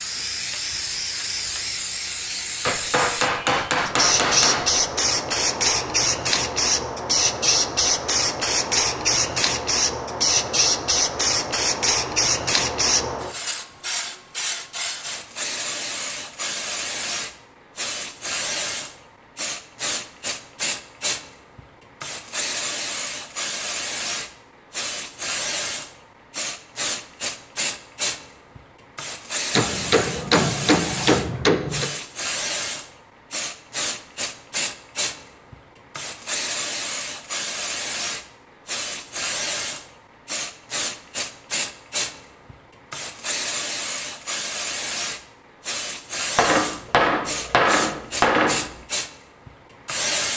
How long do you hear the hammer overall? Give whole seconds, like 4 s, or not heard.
7 s.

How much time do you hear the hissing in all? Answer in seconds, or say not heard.
50 s.